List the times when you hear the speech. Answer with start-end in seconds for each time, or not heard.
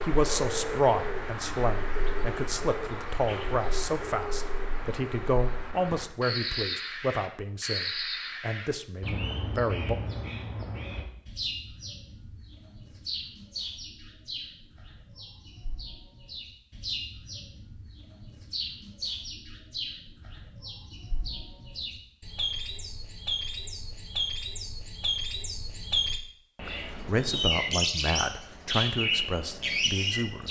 0.0-9.9, 26.6-30.4.